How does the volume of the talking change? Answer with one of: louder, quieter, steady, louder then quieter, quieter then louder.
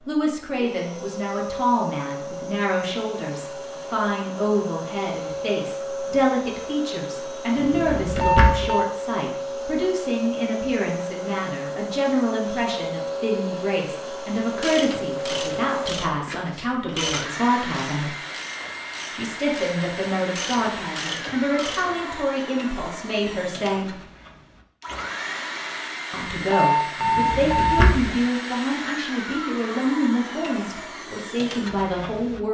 steady.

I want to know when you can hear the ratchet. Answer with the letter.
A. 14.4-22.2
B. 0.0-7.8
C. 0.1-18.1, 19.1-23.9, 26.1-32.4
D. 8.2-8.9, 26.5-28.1
A.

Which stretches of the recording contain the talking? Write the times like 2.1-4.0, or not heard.
0.1-18.1, 19.1-23.9, 26.1-32.4.